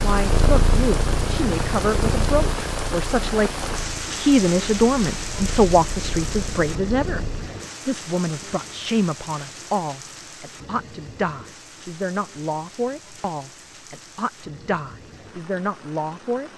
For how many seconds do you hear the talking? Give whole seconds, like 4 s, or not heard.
16 s.